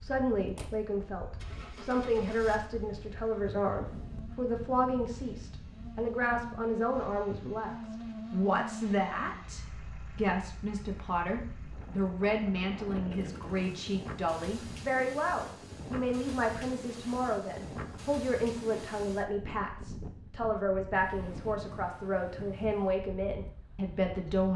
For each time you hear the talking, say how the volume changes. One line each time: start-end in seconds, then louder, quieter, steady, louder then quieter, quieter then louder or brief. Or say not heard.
0.0-24.5 steady.